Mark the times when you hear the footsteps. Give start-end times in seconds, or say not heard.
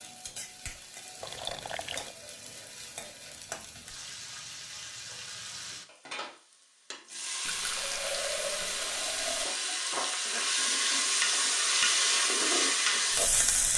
not heard.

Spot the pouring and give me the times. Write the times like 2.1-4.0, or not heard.
1.2-2.1, 7.5-9.4.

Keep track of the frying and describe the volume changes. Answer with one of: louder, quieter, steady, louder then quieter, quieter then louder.
louder.